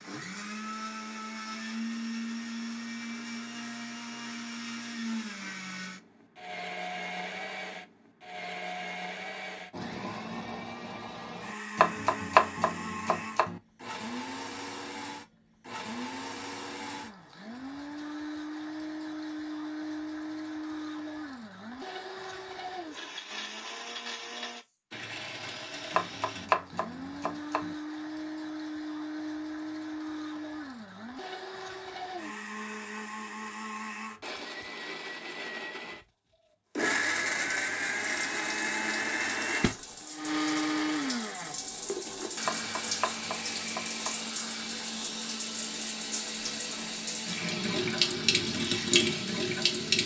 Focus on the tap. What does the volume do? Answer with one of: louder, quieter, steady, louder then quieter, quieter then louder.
louder.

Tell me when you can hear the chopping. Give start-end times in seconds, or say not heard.
11.8-13.6, 25.9-27.8, 42.5-44.1.